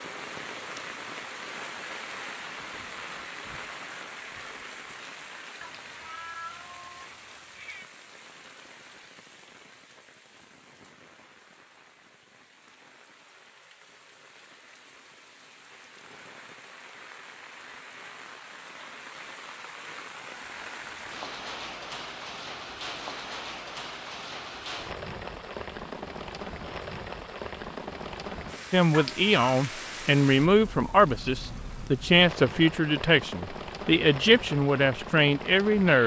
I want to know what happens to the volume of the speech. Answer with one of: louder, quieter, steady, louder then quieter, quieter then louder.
steady.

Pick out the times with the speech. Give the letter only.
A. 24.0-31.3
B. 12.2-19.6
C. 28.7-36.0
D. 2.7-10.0
C.